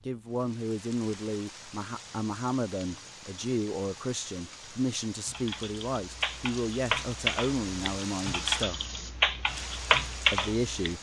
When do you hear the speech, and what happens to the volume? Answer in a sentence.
You can hear the speech from 0.1 to 8.8 s, at a steady volume; and briefly from 10.3 to 10.9 s.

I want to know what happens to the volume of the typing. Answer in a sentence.
The loudness of the typing goes up.